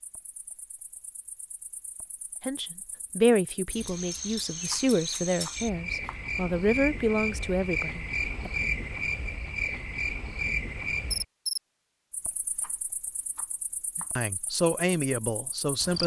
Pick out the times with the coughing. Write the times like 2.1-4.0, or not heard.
not heard.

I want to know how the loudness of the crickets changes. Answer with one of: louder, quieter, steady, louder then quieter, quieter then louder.
louder then quieter.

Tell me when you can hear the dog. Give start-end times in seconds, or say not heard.
not heard.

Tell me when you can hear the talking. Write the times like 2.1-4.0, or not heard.
2.5-8.5, 13.9-16.0.